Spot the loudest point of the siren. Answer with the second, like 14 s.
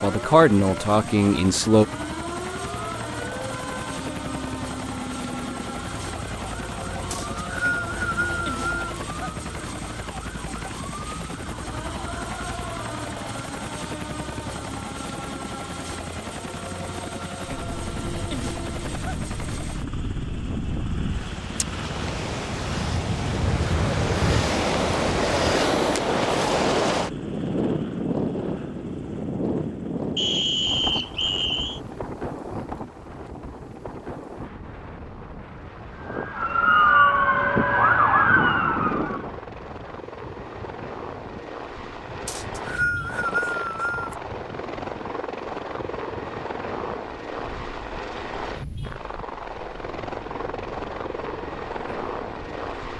37 s.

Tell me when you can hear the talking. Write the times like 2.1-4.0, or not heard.
0.0-1.9.